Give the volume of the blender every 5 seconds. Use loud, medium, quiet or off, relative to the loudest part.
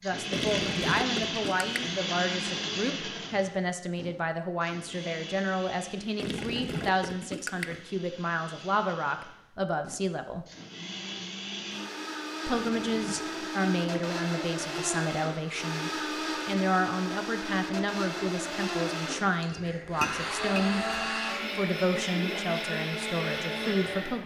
loud, quiet, loud, loud, loud.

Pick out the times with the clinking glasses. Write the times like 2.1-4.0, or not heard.
19.4-21.1.